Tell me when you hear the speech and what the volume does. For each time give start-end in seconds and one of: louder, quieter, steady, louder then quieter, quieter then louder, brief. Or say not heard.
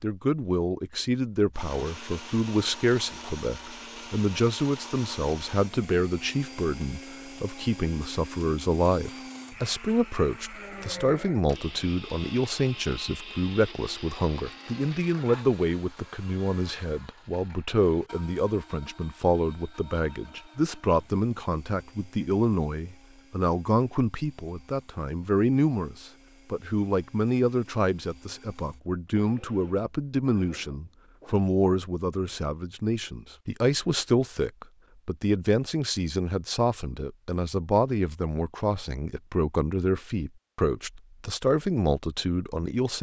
0.0-42.9 steady.